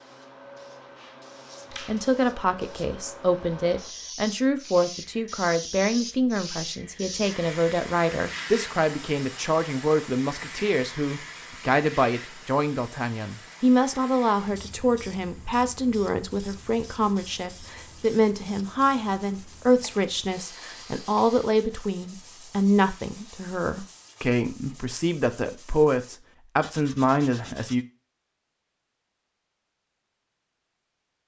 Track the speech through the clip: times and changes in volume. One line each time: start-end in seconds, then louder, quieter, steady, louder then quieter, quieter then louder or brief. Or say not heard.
1.9-27.9 steady.